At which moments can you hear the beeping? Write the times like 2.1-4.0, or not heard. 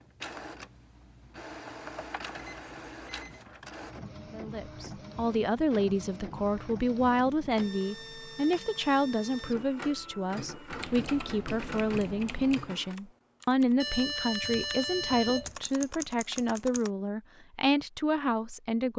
2.4-3.4, 13.8-15.6.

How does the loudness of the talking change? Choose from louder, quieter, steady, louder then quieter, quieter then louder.
steady.